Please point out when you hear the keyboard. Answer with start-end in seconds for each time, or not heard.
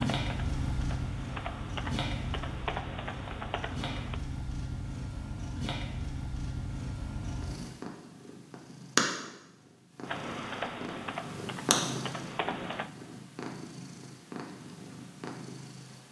0.0-4.2, 10.1-12.9.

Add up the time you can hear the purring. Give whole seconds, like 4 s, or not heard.
16 s.